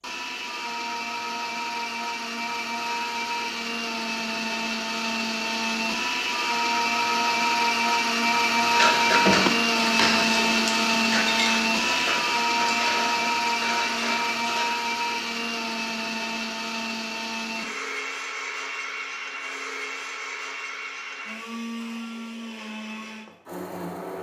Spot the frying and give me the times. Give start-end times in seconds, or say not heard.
not heard.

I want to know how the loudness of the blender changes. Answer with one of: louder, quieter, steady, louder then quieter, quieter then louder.
louder then quieter.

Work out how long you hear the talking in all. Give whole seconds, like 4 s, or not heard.
not heard.